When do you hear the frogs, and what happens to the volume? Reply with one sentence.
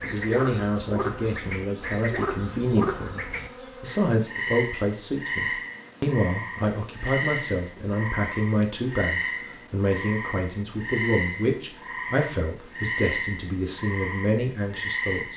You can hear the frogs from 0.0 to 15.3 s, at a steady volume.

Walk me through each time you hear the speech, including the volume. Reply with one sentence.
The speech can be heard from 0.0 to 15.3 s, at a steady volume.